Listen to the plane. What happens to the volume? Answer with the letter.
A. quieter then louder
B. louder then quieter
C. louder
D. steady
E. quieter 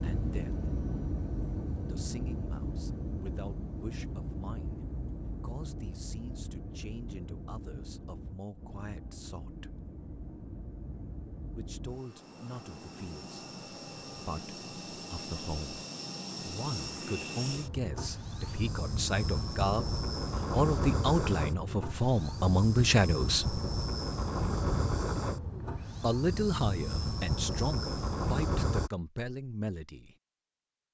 A.